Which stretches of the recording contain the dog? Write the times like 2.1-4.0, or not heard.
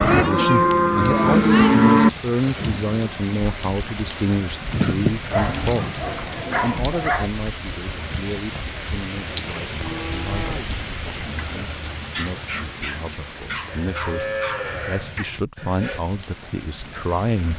5.3-7.3, 12.1-14.7.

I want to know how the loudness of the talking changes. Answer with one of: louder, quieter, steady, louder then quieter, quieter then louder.
quieter then louder.